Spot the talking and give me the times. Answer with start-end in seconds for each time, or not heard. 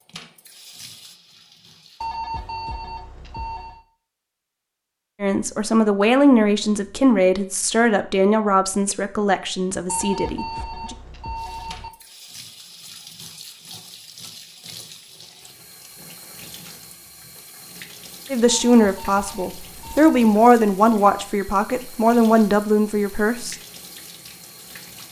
5.2-10.9, 18.3-23.6.